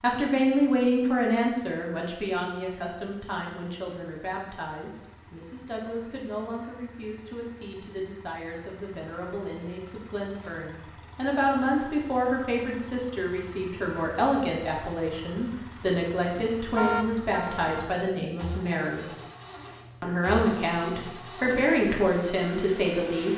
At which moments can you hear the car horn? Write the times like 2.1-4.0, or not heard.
16.8-17.9.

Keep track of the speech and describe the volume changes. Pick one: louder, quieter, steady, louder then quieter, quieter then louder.
quieter then louder.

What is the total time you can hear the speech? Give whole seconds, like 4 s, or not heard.
22 s.